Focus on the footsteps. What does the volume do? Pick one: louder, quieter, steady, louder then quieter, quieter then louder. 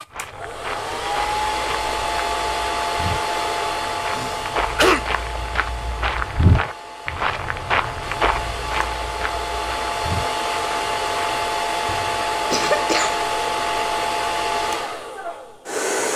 louder then quieter.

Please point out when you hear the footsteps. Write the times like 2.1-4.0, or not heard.
0.1-11.5.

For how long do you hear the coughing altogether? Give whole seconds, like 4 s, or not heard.
2 s.